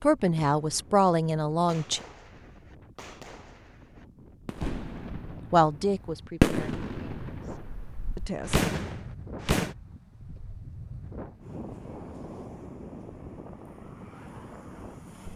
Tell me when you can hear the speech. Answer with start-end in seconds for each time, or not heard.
0.0-2.0, 5.5-7.5, 8.2-8.6.